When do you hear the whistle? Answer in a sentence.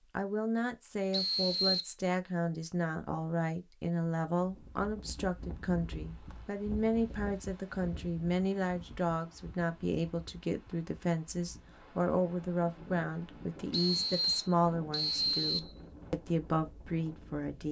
You can hear the whistle from 1.1 to 1.9 s and from 13.7 to 15.7 s.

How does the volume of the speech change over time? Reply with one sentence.
The loudness of the speech stays about the same.